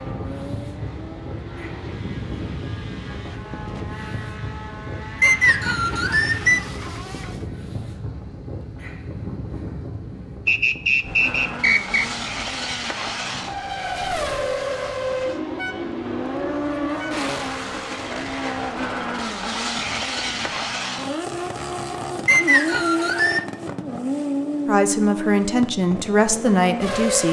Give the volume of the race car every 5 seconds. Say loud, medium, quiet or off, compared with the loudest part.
quiet, quiet, loud, loud, loud, loud.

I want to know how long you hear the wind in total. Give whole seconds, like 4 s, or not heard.
21 s.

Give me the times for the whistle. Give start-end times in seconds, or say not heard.
5.2-6.7, 10.4-12.1, 22.2-23.4.